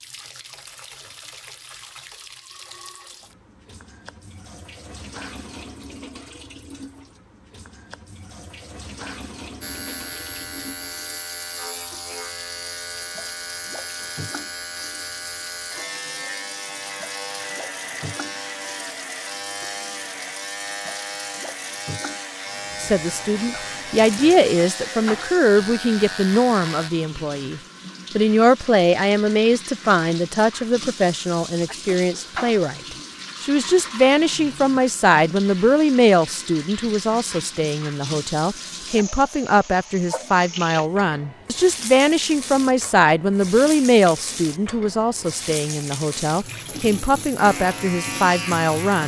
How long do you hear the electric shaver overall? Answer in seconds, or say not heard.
19 s.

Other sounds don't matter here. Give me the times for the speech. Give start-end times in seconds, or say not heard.
22.8-32.8, 33.4-49.0.